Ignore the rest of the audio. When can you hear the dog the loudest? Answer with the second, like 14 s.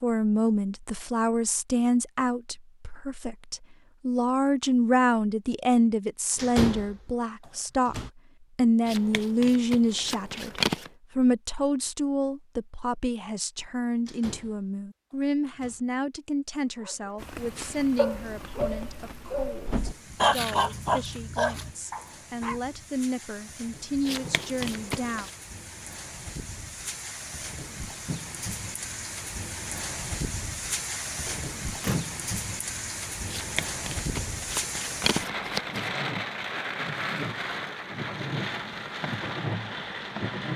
20 s.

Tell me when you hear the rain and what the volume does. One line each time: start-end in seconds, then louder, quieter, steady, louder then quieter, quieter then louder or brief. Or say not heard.
17.1-40.5 louder.